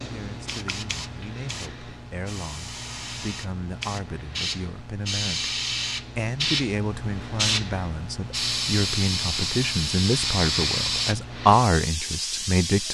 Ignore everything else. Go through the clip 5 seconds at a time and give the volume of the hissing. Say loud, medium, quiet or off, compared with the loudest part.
medium, loud, loud.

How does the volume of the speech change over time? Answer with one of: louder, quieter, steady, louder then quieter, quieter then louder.
louder.